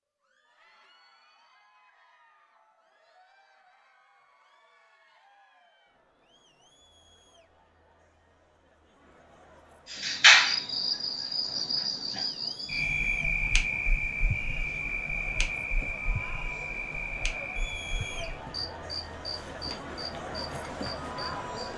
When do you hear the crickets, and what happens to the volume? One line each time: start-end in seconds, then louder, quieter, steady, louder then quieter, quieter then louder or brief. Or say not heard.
9.9-21.7 quieter.